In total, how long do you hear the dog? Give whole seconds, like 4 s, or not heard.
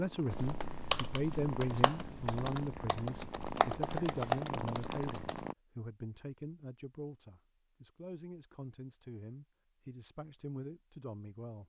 not heard.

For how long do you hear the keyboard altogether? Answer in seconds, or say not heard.
5 s.